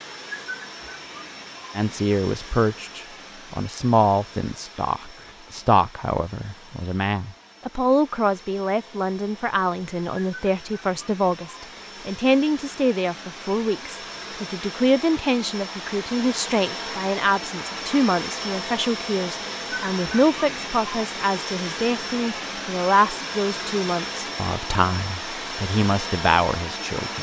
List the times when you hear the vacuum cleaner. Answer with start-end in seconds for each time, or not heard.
0.0-27.1.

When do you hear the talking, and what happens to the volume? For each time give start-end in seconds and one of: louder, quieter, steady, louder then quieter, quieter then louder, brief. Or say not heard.
1.8-27.1 steady.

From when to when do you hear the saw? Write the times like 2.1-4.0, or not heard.
not heard.